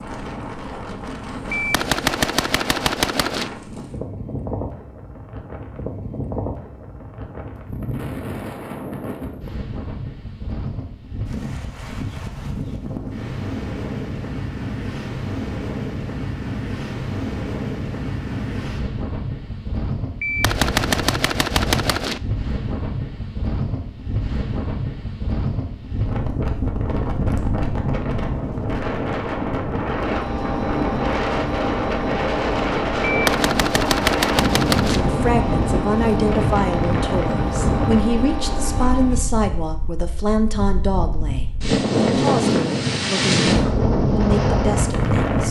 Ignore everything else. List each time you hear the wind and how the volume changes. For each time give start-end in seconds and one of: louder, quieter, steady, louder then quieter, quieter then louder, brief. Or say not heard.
0.0-45.4 louder.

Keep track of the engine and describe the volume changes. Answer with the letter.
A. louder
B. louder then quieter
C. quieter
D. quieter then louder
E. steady
E.